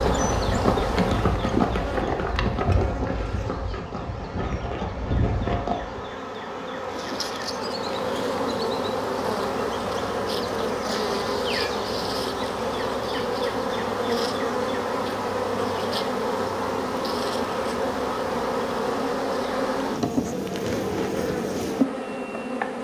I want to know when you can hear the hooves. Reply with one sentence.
The hooves can be heard from 0.0 to 6.0 s.